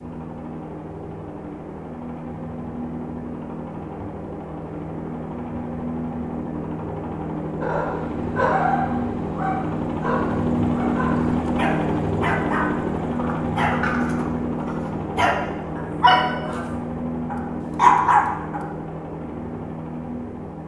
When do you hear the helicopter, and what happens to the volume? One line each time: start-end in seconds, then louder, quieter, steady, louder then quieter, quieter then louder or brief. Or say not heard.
0.0-20.6 louder then quieter.